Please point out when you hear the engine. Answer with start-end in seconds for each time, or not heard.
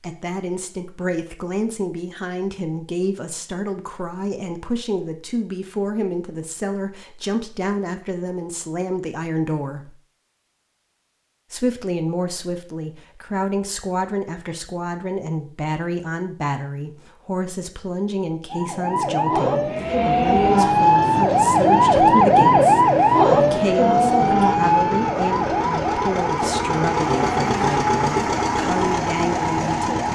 19.6-30.0.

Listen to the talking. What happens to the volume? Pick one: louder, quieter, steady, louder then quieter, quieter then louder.
steady.